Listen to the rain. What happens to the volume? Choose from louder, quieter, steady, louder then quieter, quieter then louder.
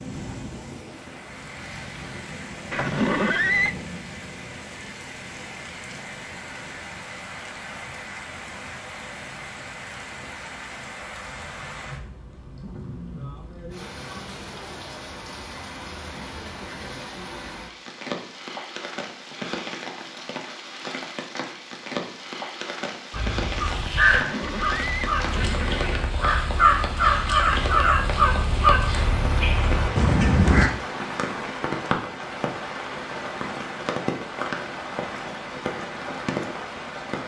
louder.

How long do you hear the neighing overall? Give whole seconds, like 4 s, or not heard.
3 s.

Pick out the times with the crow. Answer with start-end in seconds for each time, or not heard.
23.1-30.7.